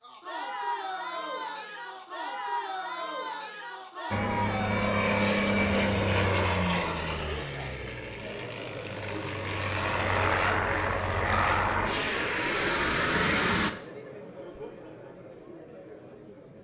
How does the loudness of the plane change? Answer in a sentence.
The volume of the plane goes down, then up.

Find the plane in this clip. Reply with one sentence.
The plane can be heard from 4.1 to 13.7 s.